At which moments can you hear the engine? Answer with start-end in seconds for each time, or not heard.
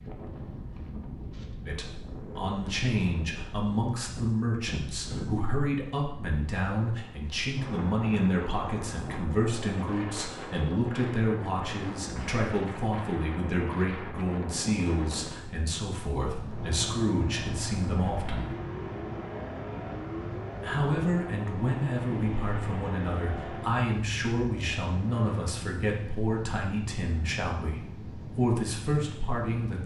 16.4-25.6.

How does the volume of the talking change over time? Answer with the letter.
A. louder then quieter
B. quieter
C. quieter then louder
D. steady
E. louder
D.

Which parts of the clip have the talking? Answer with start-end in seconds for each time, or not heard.
1.6-18.6, 20.6-29.8.